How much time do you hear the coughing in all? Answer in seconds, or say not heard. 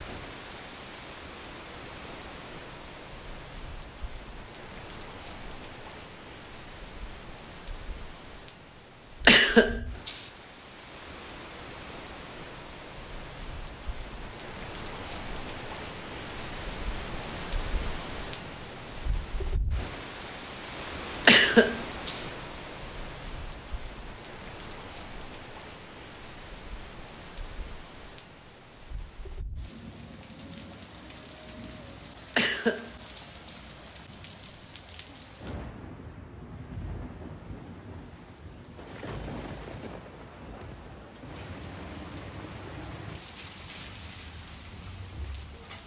3 s.